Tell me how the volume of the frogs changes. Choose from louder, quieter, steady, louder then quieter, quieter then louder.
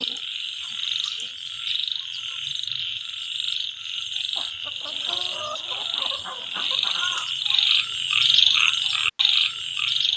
louder.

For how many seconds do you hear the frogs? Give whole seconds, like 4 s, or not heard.
10 s.